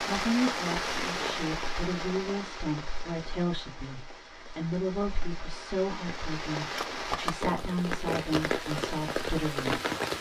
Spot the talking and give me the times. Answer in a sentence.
The talking can be heard from 0.0 to 9.8 s.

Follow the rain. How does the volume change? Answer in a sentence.
The loudness of the rain goes down, then up.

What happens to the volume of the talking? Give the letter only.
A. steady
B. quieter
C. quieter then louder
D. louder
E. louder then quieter
A.